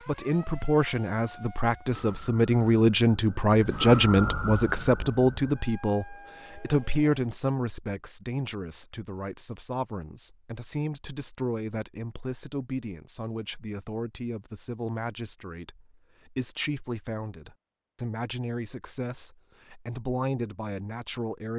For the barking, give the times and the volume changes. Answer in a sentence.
The barking can't be heard in this clip.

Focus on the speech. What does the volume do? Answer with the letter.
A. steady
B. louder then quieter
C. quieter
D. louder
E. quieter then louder
C.